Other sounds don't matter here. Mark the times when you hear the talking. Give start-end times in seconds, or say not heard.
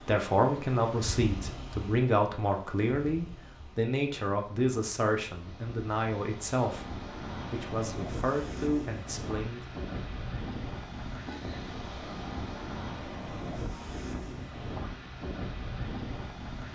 0.0-9.8.